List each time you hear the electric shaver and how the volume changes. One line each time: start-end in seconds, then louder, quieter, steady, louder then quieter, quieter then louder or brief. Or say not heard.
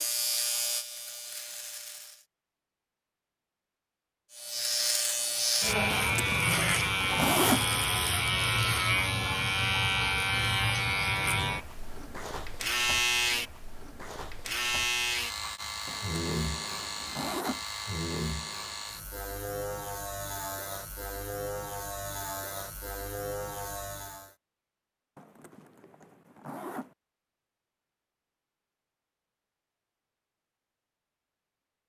0.0-2.2 brief
4.3-24.4 quieter.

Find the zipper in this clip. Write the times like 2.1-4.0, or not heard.
5.9-7.7, 15.8-17.6, 25.1-26.9.